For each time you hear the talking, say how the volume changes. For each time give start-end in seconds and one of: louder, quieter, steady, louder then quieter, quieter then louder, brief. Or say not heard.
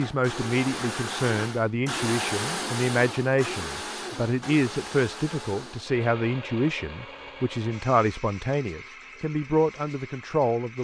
0.0-10.8 steady.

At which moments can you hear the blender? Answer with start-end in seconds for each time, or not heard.
0.0-10.8.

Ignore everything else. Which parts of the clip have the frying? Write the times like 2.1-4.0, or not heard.
not heard.